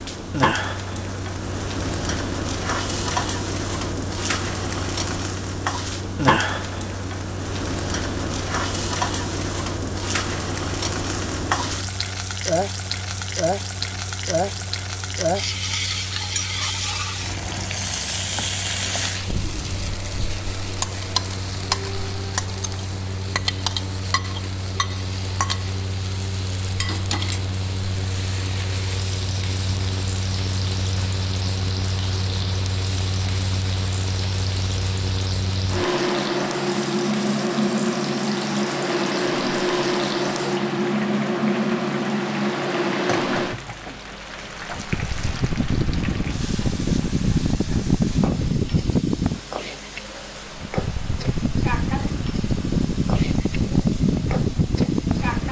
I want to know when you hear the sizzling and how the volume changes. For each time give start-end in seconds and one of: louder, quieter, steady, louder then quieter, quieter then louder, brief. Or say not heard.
0.0-55.4 quieter.